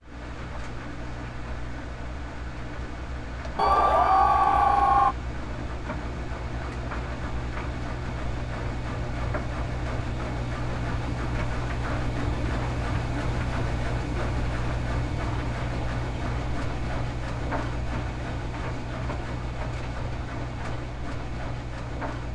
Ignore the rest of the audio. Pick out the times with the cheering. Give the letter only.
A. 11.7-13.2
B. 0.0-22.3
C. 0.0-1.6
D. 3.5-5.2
D.